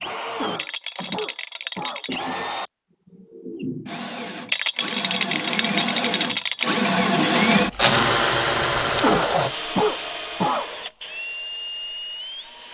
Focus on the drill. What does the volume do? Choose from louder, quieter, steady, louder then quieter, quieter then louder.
louder then quieter.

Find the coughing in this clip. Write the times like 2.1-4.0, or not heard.
0.3-2.0, 9.0-10.7.